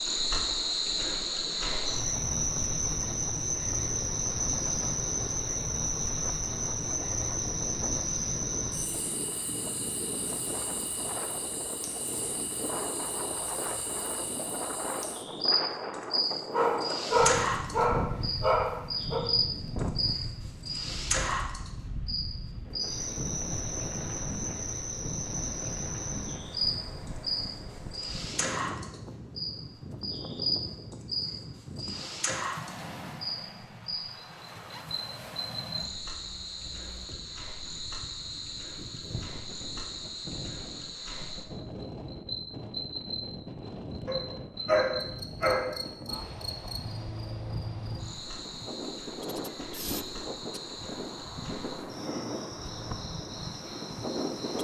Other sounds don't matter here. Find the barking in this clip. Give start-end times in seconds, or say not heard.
16.5-19.2, 44.0-45.7.